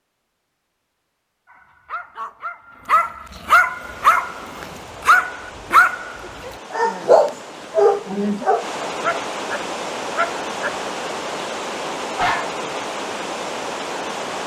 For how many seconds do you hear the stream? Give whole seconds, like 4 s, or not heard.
11 s.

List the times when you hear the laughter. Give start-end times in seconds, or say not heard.
7.6-8.4.